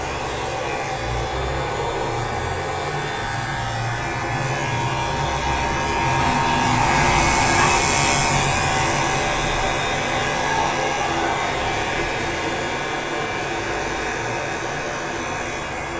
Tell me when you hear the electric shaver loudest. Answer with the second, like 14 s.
8 s.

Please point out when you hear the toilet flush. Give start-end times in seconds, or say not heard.
6.2-7.8.